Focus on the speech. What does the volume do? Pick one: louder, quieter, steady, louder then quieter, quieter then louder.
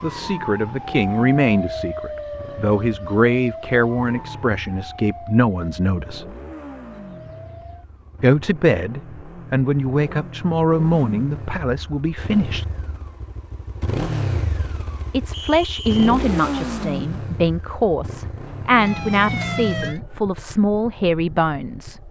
steady.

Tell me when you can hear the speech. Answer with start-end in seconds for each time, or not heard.
0.0-6.2, 8.2-12.7, 15.1-22.0.